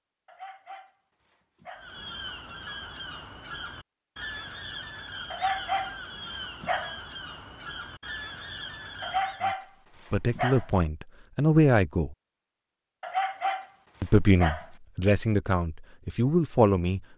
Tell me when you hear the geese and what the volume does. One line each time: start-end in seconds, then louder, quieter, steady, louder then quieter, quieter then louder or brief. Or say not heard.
1.8-9.4 steady.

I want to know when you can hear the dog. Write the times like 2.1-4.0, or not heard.
0.2-1.9, 5.3-7.0, 9.0-10.7, 13.0-14.7.